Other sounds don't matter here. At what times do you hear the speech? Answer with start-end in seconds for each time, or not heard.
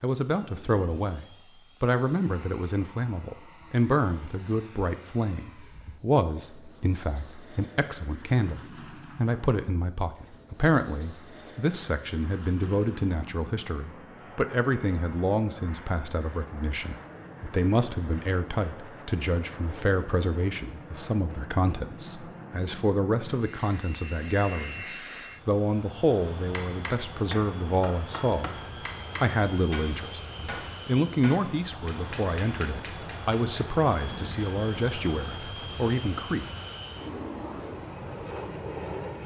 0.0-24.9, 25.4-28.6, 29.1-36.5.